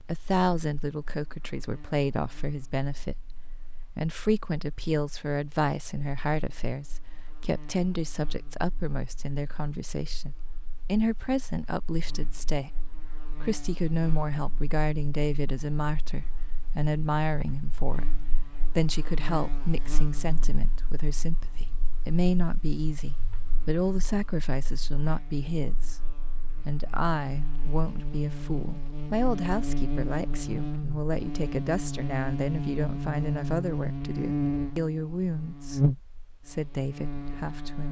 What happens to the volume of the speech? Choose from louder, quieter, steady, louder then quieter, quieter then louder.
steady.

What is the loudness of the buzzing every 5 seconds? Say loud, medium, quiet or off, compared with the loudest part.
quiet, quiet, quiet, quiet, quiet, medium, loud, loud.